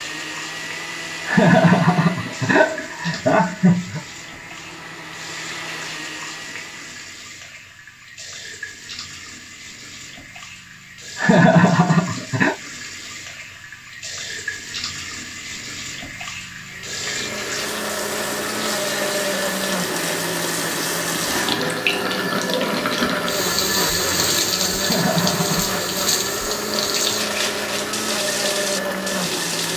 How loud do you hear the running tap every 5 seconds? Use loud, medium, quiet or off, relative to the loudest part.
quiet, quiet, medium, medium, loud, loud.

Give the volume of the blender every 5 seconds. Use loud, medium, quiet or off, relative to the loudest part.
medium, medium, off, loud, loud, loud.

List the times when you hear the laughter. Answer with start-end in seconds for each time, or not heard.
1.2-4.0, 11.2-12.6, 24.8-25.8.